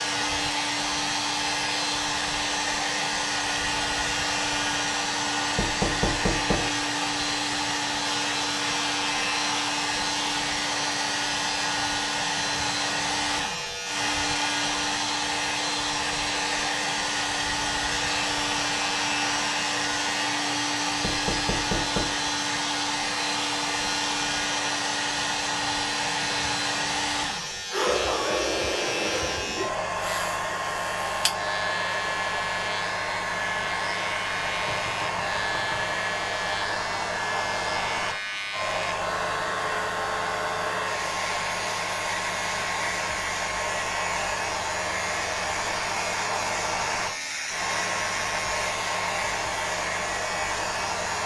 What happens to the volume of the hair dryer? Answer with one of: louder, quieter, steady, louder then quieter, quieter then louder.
steady.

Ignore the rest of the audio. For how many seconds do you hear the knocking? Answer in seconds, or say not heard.
4 s.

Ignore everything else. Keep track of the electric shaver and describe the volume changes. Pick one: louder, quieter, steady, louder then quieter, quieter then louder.
steady.